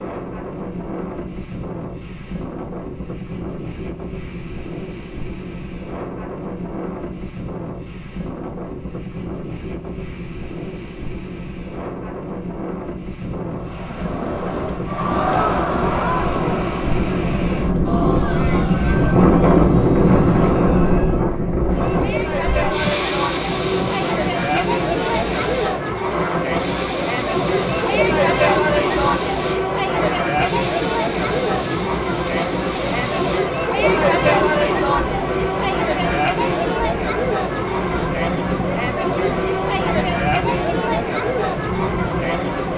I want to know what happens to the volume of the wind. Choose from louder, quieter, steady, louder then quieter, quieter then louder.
louder then quieter.